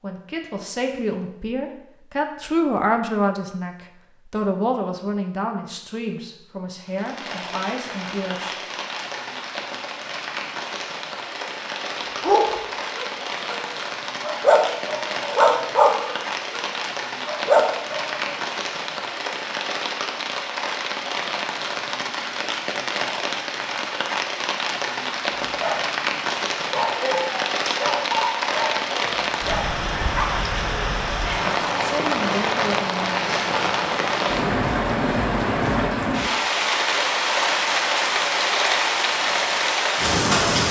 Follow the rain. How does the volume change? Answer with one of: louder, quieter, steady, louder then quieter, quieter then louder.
louder.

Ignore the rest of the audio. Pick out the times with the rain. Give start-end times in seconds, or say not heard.
6.8-40.6.